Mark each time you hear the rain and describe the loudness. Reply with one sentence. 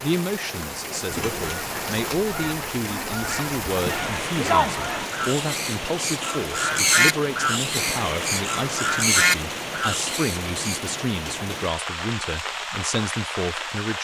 The rain can be heard from 0.0 to 13.9 s, at a steady volume.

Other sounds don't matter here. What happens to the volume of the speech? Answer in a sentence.
The loudness of the speech stays about the same.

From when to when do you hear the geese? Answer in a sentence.
The geese can be heard from 1.1 to 10.8 s.